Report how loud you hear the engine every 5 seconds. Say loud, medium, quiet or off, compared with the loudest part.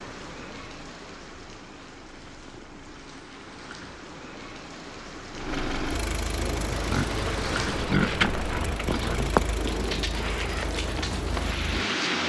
quiet, loud, loud.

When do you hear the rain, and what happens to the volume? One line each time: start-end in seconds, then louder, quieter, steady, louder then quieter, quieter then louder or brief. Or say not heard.
0.0-12.2 louder.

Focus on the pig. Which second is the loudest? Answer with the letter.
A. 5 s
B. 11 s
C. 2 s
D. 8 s
D.